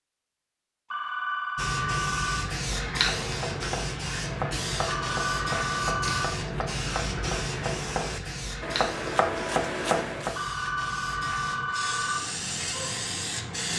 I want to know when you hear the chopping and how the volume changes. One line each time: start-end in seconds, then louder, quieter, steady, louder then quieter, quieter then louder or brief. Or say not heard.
2.7-10.4 louder.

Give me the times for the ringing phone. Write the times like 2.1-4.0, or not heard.
0.9-2.5, 4.8-6.3, 10.3-12.2.